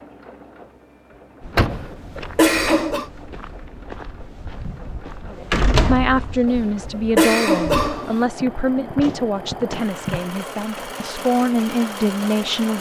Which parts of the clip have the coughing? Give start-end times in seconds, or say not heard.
1.7-3.0, 6.5-8.2.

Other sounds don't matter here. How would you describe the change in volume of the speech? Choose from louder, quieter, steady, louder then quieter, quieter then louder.
quieter then louder.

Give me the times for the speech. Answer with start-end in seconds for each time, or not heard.
5.2-12.7.